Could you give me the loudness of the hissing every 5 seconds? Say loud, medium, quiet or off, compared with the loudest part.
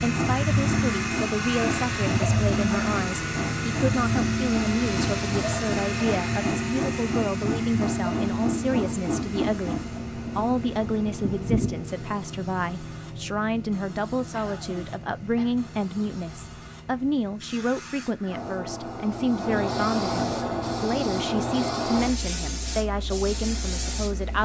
loud, loud, medium, medium, loud.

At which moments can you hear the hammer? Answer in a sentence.
You can't hear the hammer here.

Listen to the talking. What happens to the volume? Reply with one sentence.
The volume of the talking stays about the same.